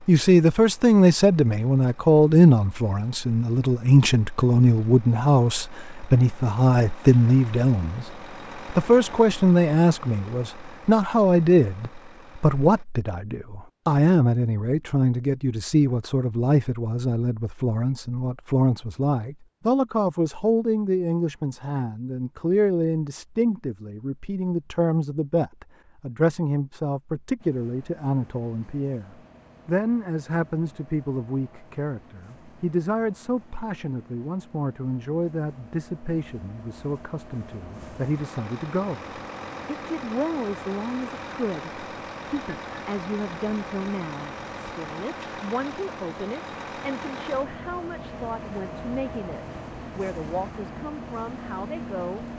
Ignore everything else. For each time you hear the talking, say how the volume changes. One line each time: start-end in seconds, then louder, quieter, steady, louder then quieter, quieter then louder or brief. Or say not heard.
0.1-8.1 steady
8.7-52.2 quieter.